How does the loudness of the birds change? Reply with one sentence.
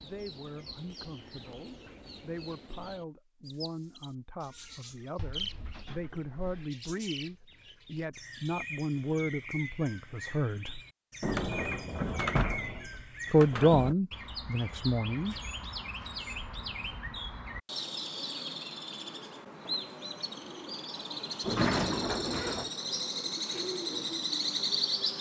The volume of the birds goes up.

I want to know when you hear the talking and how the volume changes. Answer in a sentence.
You can hear the talking from 0.0 to 10.8 s, getting louder; and briefly from 13.3 to 15.3 s.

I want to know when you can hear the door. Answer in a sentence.
The door can be heard from 5.2 to 6.7 s, from 11.2 to 13.9 s and from 21.4 to 22.7 s.